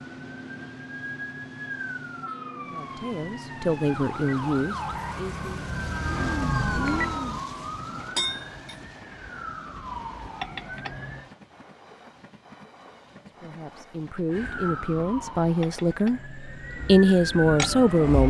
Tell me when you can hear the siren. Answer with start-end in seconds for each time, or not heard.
0.0-11.3, 14.3-18.2.